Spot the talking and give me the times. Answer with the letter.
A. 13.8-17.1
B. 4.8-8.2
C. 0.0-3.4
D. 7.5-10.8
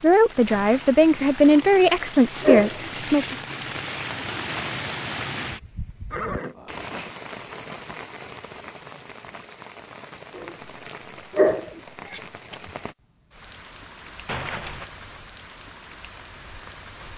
C.